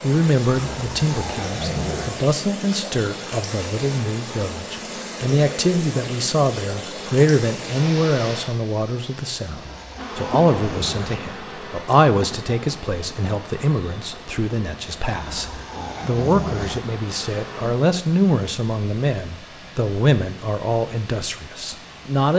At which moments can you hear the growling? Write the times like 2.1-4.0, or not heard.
0.5-2.1, 9.6-11.2, 15.1-16.8.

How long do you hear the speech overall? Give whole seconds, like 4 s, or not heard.
22 s.